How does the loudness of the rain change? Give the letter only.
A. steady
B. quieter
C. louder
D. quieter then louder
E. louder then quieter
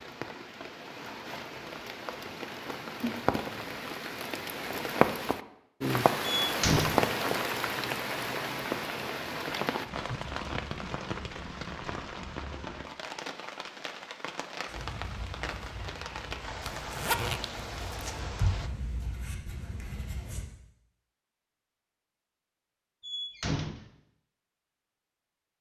E.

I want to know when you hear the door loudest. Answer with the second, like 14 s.
7 s.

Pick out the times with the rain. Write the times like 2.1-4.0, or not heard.
0.0-18.7.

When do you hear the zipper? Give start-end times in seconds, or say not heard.
16.6-18.2.